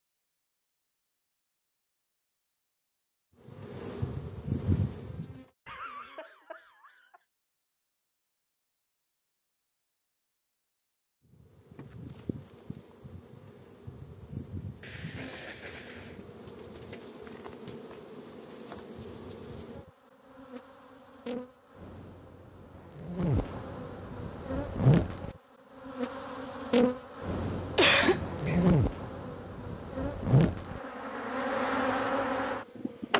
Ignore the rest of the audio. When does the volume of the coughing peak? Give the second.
28 s.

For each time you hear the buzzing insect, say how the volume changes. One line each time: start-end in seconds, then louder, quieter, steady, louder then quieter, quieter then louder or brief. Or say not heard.
3.5-5.5 brief
11.3-33.1 louder.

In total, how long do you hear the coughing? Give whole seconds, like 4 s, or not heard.
4 s.